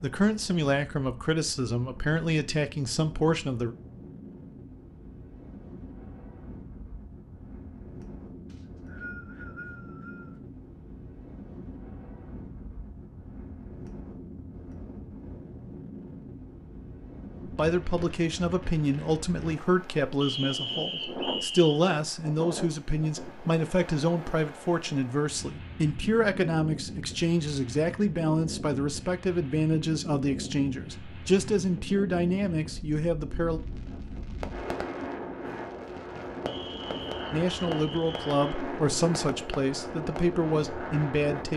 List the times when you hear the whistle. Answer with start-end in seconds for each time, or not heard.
8.4-10.4, 20.2-21.9, 36.5-38.5.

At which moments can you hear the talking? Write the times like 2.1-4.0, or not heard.
0.0-3.8, 17.4-33.6, 37.3-41.5.